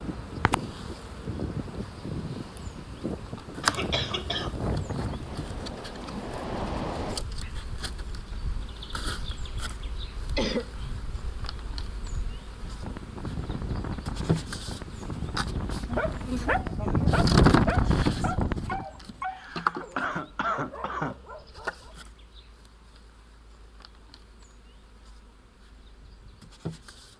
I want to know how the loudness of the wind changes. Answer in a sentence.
The loudness of the wind goes down, then up.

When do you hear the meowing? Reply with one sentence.
The meowing can't be heard in this clip.